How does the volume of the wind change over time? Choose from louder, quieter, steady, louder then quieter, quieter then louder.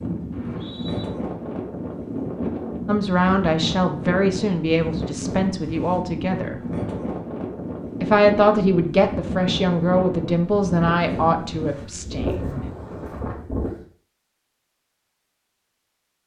steady.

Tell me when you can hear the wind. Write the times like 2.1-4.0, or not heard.
0.0-13.8.